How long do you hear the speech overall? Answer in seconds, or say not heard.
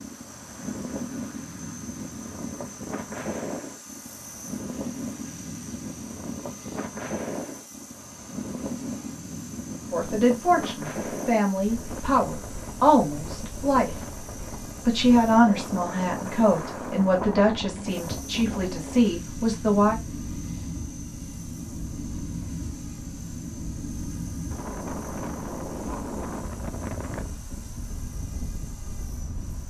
9 s.